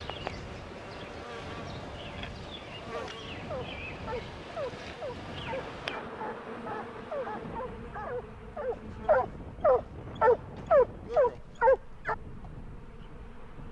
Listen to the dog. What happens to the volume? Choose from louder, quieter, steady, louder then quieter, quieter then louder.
louder.